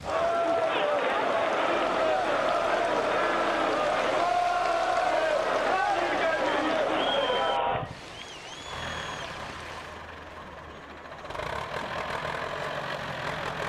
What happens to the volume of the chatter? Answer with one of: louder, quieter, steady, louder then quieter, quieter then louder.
quieter.